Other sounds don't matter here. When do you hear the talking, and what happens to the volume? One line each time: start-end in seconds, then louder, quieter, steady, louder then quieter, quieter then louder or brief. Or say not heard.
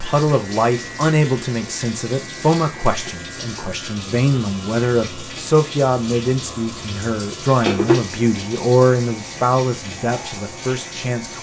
0.0-11.3 steady.